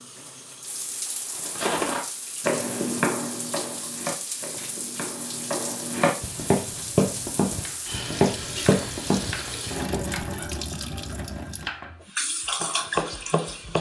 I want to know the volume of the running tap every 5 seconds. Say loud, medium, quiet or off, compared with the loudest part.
medium, loud, loud.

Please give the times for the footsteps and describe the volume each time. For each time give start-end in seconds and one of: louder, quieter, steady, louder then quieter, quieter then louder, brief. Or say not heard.
1.4-10.0 quieter then louder.